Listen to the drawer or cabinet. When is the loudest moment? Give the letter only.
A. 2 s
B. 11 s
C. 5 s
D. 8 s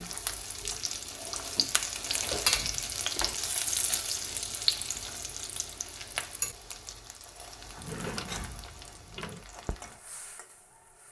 D.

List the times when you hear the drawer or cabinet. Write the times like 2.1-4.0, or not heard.
1.1-2.2, 7.8-9.4.